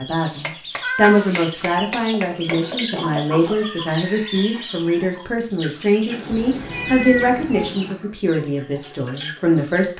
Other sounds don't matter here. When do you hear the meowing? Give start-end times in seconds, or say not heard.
0.2-2.1, 6.3-7.7.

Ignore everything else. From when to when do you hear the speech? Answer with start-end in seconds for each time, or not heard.
0.0-9.9.